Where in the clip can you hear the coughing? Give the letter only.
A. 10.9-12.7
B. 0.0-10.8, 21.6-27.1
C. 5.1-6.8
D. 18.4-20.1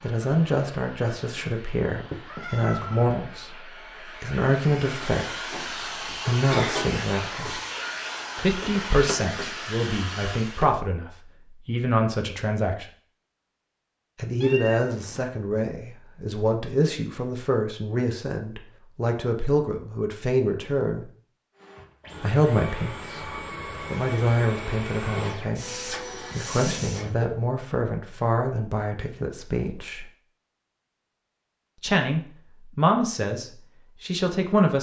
C.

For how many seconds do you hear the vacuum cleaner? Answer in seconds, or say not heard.
16 s.